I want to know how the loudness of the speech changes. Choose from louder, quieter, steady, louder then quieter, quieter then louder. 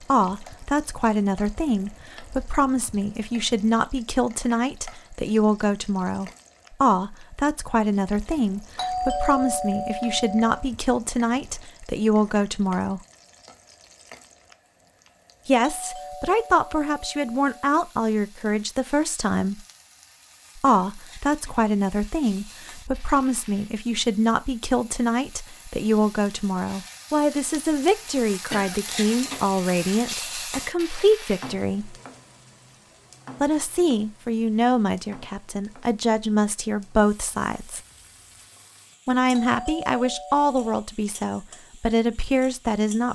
steady.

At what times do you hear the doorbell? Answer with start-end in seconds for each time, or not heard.
8.8-10.6, 15.8-17.7, 39.3-40.5.